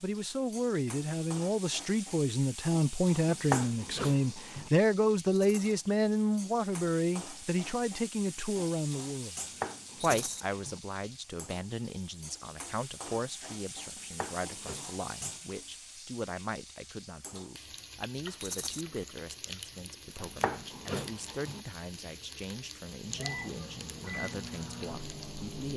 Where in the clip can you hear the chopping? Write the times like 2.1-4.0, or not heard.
3.3-4.7, 9.3-10.8, 13.9-15.4, 20.2-21.6.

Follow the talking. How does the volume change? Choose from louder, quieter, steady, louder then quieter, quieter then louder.
quieter.